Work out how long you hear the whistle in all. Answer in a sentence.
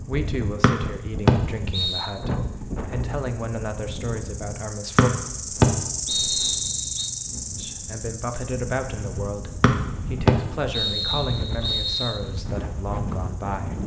You can hear the whistle for 6 seconds altogether.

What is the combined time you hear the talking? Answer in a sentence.
The talking can be heard for 11 seconds in total.